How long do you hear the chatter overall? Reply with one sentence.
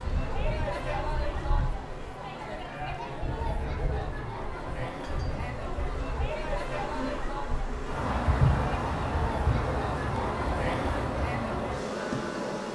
The chatter can be heard for 13 seconds in total.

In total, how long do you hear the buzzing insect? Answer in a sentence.
The buzzing insect can be heard for 13 seconds in total.